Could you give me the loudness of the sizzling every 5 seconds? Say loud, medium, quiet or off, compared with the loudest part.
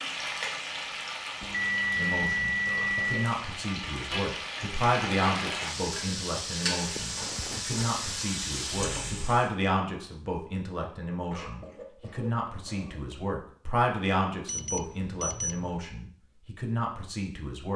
loud, loud, off, off.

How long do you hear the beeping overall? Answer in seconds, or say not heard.
4 s.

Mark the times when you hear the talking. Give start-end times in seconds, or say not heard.
1.9-17.7.